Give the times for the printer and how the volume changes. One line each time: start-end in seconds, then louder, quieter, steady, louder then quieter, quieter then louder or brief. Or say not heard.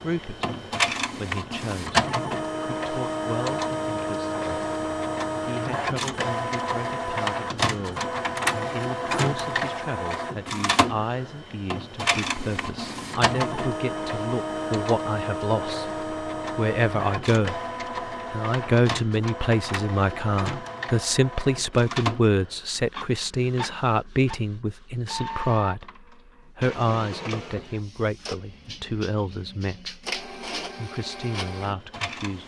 0.0-32.4 quieter.